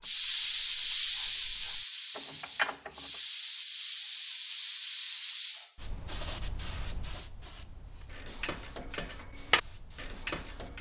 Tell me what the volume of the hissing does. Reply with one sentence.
The loudness of the hissing goes down.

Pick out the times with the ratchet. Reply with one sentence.
You can hear the ratchet from 0.0 to 3.2 s and from 8.1 to 10.7 s.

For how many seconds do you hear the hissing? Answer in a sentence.
The hissing can be heard for 11 seconds in total.